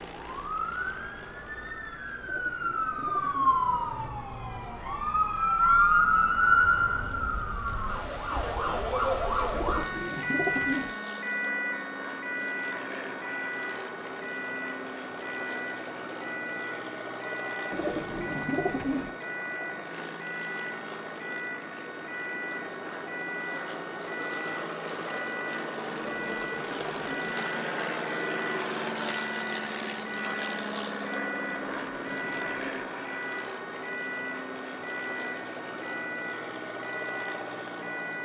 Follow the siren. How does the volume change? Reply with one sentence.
The loudness of the siren goes down.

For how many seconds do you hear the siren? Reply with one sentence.
The siren can be heard for 38 seconds in total.